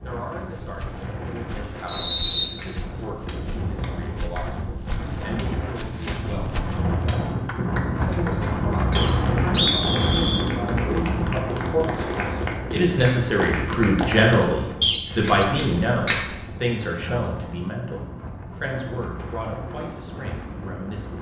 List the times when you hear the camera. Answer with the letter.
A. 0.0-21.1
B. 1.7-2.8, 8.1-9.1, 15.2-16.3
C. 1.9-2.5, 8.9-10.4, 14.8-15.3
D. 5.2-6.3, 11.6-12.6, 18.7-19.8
B.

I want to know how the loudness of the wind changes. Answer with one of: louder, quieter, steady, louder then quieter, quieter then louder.
louder then quieter.